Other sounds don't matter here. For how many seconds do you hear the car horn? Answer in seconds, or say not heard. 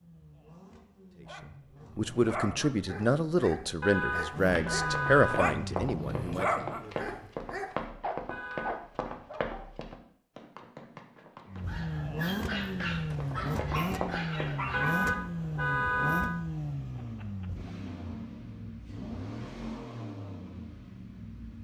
4 s.